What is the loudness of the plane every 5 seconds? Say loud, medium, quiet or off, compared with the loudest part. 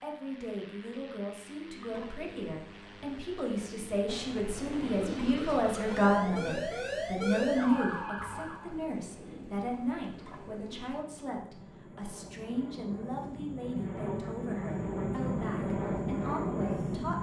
quiet, quiet, medium, loud.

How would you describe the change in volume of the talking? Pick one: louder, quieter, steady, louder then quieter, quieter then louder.
louder then quieter.